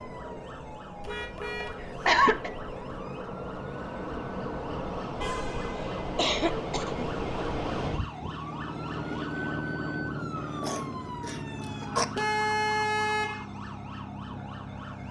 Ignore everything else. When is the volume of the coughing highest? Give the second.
2 s.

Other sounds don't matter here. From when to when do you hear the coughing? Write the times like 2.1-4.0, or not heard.
1.8-2.5, 6.2-7.0, 10.6-12.1.